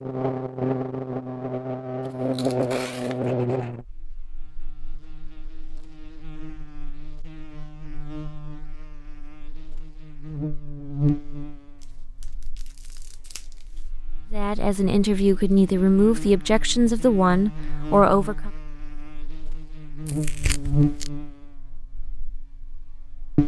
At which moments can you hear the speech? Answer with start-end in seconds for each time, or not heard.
14.3-18.5.